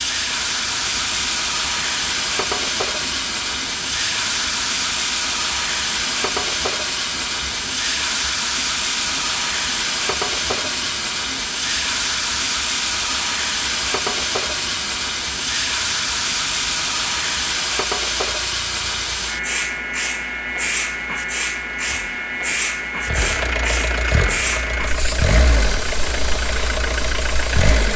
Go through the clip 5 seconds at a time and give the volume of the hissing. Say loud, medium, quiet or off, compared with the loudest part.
loud, loud, loud, loud, loud, medium.